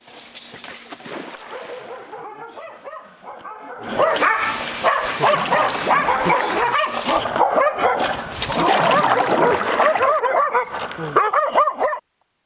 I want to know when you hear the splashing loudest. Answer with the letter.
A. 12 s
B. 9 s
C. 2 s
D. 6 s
B.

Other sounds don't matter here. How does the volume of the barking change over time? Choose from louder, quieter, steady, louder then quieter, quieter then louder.
louder.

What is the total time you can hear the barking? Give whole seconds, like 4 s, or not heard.
12 s.